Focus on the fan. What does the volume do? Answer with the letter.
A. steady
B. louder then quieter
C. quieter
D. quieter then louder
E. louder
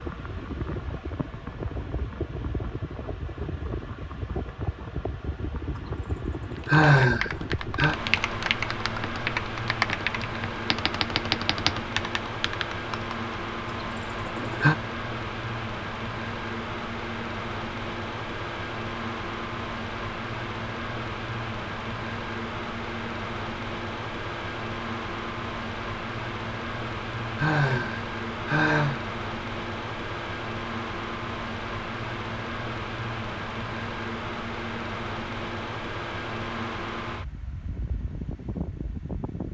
A.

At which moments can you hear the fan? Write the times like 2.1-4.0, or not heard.
0.0-39.5.